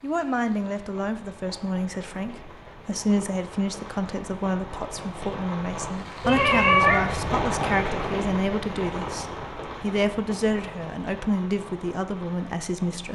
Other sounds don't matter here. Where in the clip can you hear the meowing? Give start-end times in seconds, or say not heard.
6.2-7.5.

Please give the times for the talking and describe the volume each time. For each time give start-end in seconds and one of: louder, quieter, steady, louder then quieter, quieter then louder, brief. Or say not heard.
0.0-13.0 steady.